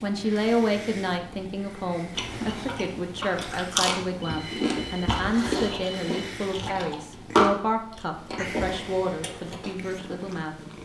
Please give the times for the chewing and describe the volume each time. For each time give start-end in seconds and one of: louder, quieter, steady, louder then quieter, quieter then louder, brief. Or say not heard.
2.1-9.8 louder then quieter.